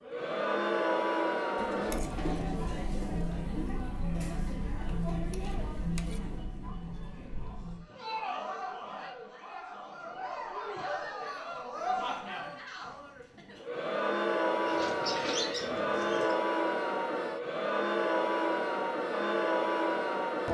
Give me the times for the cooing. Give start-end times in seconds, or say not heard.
1.6-3.3, 14.7-16.4.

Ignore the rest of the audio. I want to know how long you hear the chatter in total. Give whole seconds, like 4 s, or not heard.
20 s.